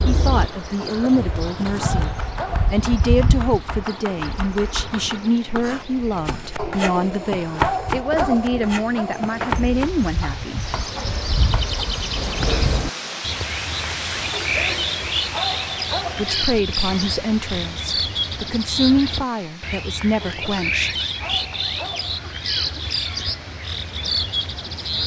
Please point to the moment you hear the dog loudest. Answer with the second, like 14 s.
8 s.